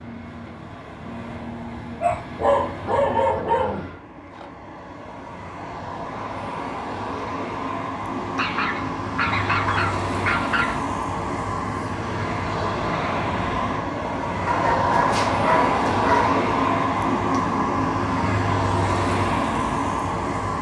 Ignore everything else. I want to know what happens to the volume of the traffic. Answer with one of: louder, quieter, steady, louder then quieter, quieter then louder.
louder.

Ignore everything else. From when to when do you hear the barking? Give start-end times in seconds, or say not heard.
2.0-3.9, 8.2-10.8, 14.4-16.4.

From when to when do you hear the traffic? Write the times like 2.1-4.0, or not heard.
0.0-20.5.